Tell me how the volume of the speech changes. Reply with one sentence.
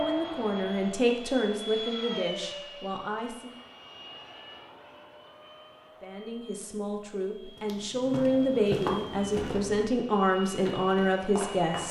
The loudness of the speech goes down, then up.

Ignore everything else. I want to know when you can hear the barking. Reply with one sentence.
You can't hear the barking here.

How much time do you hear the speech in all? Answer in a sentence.
You can hear the speech for 9 seconds altogether.